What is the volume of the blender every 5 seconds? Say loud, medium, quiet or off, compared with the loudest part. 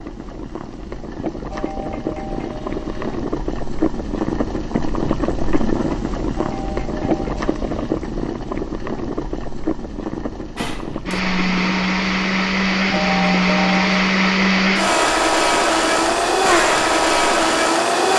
off, off, loud, loud.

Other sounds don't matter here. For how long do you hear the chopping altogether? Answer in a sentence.
You can't hear the chopping here.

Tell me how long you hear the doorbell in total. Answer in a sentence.
The doorbell can be heard for 4 seconds in total.